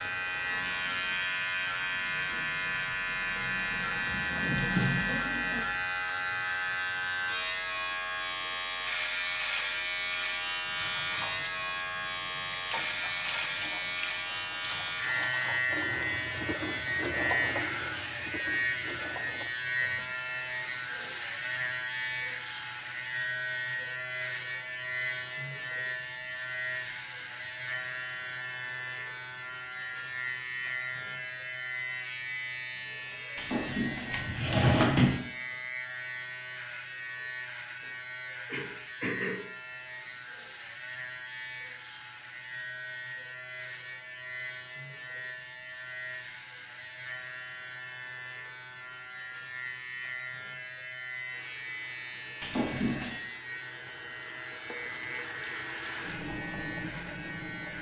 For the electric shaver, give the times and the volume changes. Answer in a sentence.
The electric shaver can be heard from 0.0 to 57.7 s, getting quieter.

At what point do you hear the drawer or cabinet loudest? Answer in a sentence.
The loudest moment of the drawer or cabinet is at 35 seconds.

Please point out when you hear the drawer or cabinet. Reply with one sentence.
You can hear the drawer or cabinet from 4.4 to 5.6 s, from 33.4 to 35.2 s and from 52.4 to 53.2 s.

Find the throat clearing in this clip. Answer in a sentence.
You can hear the throat clearing from 38.5 to 39.4 s.